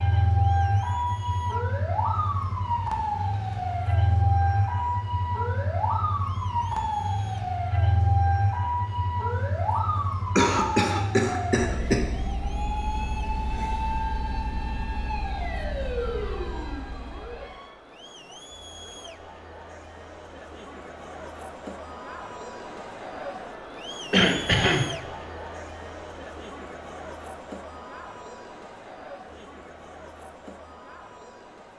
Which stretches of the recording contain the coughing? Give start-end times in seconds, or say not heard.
10.3-12.1, 24.1-24.9.